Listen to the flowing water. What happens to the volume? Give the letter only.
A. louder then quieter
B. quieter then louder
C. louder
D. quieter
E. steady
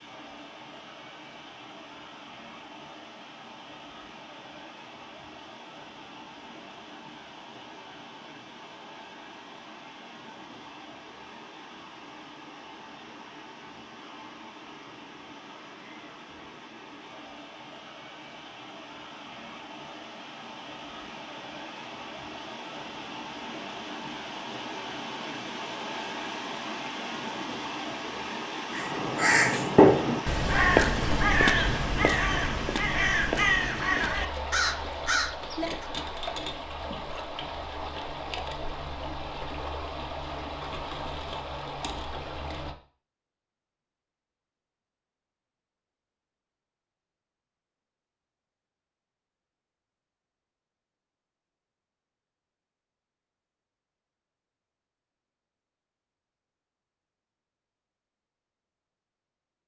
C.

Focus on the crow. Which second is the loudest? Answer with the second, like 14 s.
30 s.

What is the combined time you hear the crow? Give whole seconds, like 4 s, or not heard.
7 s.